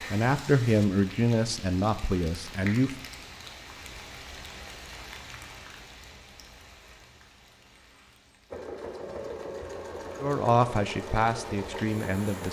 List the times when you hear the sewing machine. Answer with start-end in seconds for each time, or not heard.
8.5-12.4.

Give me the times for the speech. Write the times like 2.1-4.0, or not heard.
0.0-3.0, 10.2-12.4.